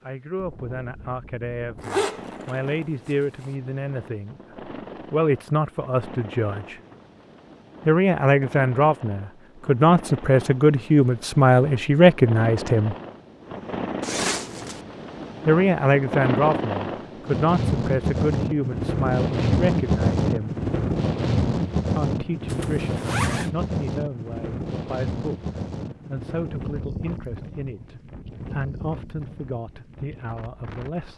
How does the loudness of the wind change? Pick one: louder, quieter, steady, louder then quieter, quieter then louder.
louder then quieter.